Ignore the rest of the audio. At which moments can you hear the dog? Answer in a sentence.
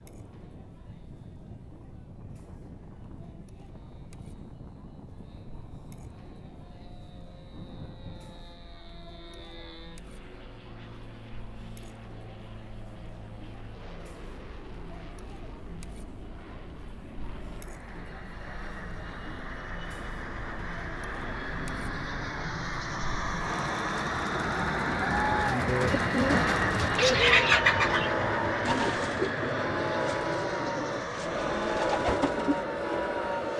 You can't hear the dog here.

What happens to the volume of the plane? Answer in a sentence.
The loudness of the plane goes up.